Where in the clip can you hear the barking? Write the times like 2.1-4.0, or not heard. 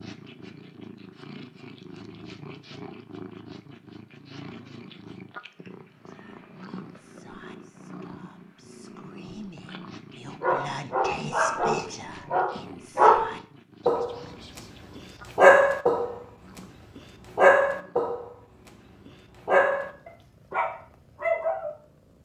10.4-21.8.